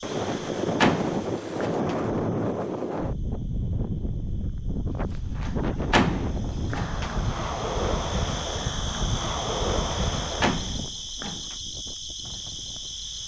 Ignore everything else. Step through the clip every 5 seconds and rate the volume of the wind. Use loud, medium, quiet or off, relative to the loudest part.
loud, loud, medium.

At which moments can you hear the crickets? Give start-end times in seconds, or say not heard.
0.0-13.2.